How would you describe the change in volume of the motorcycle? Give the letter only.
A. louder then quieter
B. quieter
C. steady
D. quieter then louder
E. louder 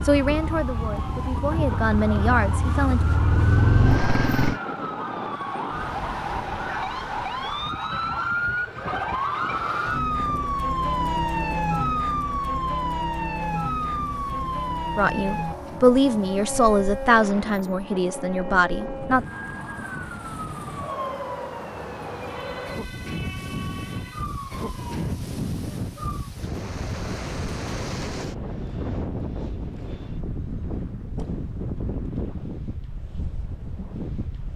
E.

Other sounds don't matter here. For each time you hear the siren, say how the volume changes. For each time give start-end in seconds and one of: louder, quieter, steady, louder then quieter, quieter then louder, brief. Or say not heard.
0.0-26.3 louder then quieter.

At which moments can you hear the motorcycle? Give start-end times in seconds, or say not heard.
0.0-4.6.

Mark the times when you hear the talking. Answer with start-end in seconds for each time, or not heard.
0.0-3.0, 14.9-19.2.